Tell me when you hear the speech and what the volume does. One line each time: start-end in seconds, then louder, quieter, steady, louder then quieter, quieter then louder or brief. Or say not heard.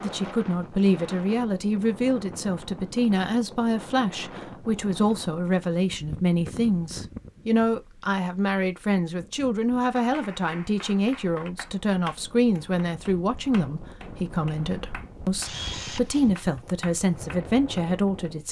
0.0-18.4 steady.